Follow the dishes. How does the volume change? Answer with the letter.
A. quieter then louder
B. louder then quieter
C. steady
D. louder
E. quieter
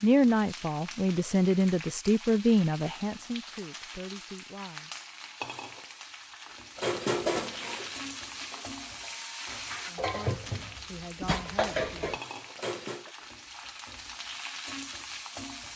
A.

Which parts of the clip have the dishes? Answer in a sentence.
You can hear the dishes from 6.8 to 13.1 s.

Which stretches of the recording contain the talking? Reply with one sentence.
You can hear the talking from 0.0 to 4.9 s and from 9.8 to 11.9 s.